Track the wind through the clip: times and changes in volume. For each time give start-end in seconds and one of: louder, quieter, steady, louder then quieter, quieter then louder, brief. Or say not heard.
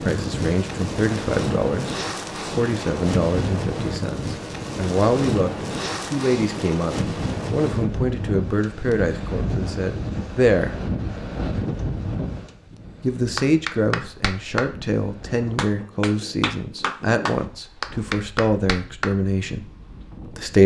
0.0-20.6 quieter.